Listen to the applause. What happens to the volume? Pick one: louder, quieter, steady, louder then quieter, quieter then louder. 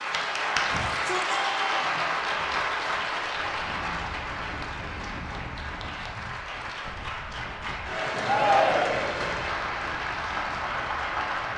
quieter then louder.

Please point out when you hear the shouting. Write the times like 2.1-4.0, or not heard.
0.7-2.0, 8.2-9.2.